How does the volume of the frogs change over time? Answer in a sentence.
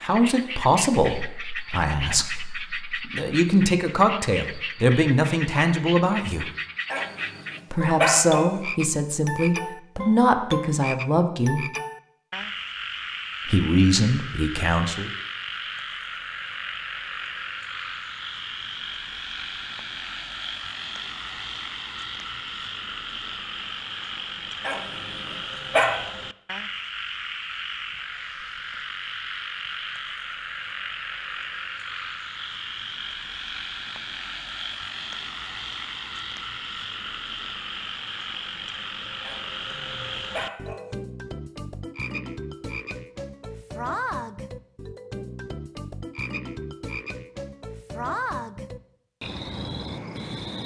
The volume of the frogs stays about the same.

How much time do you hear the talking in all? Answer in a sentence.
The talking can be heard for 12 seconds in total.